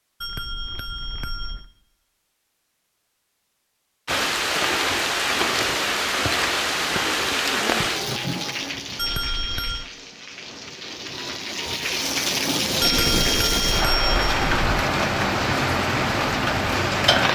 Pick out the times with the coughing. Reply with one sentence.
You can't hear the coughing here.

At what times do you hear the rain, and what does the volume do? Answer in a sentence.
You can hear the rain from 4.0 to 17.2 s, getting quieter then louder.